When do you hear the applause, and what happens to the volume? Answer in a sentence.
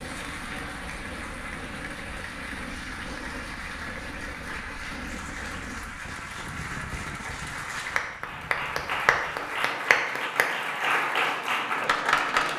You can hear the applause from 0.0 to 12.5 s, getting louder.